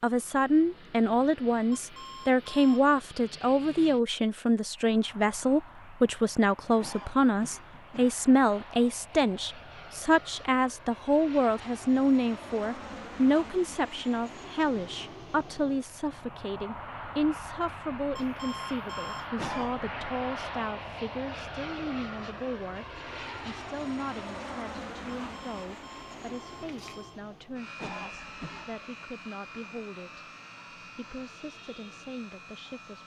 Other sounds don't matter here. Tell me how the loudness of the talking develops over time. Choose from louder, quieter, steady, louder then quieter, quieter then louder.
quieter.